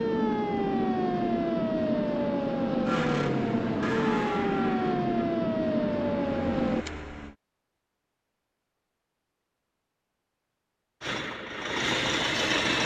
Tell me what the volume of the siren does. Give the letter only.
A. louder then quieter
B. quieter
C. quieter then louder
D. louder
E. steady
E.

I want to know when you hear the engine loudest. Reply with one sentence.
The loudest moment of the engine is at 12 seconds.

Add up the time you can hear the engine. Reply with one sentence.
The engine can be heard for 6 seconds in total.